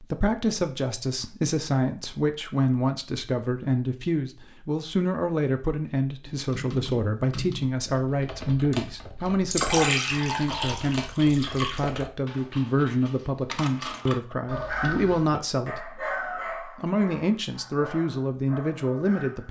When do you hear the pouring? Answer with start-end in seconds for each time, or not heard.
9.5-11.8.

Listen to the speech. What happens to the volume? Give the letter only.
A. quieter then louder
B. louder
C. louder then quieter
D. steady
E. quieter
D.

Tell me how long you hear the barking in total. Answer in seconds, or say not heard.
5 s.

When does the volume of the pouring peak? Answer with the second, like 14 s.
10 s.